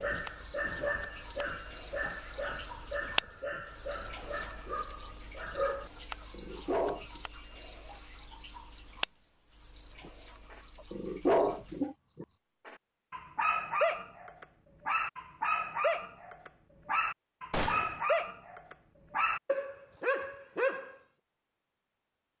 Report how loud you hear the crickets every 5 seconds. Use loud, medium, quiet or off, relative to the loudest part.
loud, loud, medium, off, off.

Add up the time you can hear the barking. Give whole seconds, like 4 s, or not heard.
18 s.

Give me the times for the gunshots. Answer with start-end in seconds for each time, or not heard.
17.5-18.0.